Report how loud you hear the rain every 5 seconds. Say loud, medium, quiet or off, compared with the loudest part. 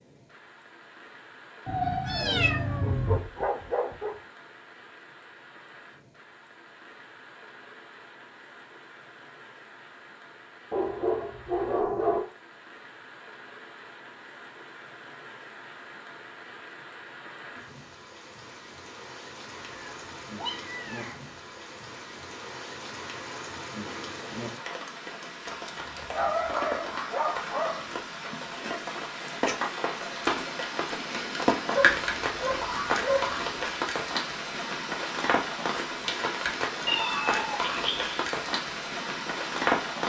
quiet, quiet, quiet, quiet, medium, medium, loud, loud.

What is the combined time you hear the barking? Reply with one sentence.
You can hear the barking for 7 seconds altogether.